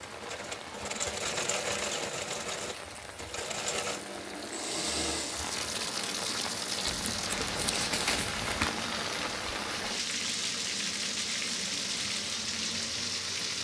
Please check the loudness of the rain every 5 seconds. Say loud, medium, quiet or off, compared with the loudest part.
medium, loud, loud.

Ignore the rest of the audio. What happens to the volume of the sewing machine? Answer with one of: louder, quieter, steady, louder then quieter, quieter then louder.
quieter.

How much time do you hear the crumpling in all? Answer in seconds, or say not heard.
2 s.